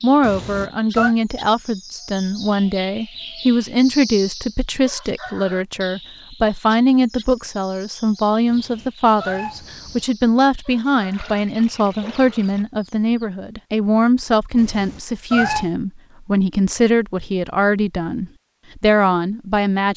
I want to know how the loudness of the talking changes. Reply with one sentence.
The loudness of the talking stays about the same.